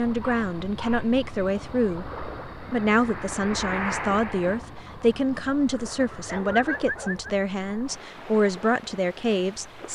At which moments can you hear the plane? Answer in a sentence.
You can hear the plane from 2.9 to 4.6 s.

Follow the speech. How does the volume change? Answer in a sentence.
The loudness of the speech stays about the same.